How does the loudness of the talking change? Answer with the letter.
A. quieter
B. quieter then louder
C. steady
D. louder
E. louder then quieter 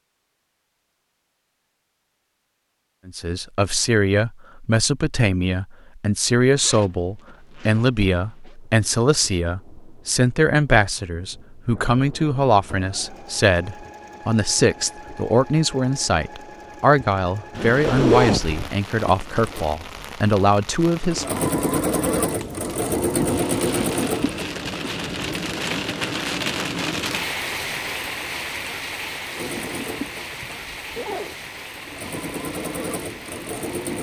C.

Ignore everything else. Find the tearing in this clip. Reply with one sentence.
You can't hear the tearing here.